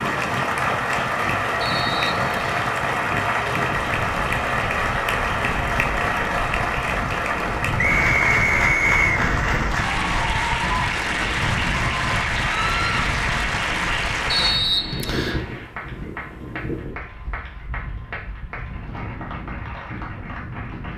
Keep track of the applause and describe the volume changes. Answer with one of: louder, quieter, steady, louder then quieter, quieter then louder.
quieter.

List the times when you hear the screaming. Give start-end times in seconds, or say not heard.
12.5-13.1.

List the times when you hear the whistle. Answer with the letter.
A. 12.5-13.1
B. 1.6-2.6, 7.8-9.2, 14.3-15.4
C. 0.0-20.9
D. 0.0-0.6
B.